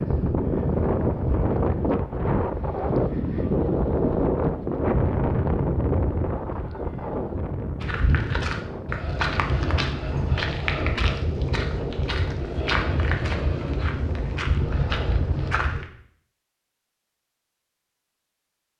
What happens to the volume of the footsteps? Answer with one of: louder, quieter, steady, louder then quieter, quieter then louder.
steady.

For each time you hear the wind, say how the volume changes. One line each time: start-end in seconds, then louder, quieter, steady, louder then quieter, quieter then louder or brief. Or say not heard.
0.0-15.6 quieter.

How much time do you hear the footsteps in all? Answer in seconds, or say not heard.
8 s.